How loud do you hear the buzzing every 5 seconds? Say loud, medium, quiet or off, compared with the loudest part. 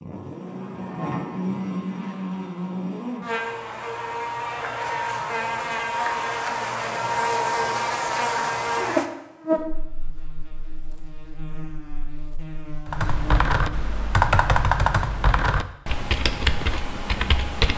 medium, loud, quiet, off.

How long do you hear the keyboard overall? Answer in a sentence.
You can hear the keyboard for 5 seconds altogether.